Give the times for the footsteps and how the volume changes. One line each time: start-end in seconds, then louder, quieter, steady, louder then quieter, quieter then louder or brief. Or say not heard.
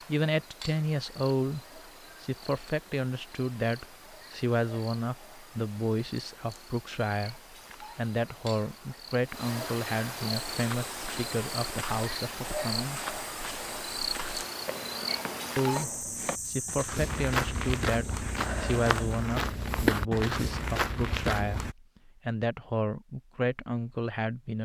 10.4-21.8 louder.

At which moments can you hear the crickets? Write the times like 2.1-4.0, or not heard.
0.0-19.2.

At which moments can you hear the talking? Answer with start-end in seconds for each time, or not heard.
0.1-13.2, 15.6-24.5.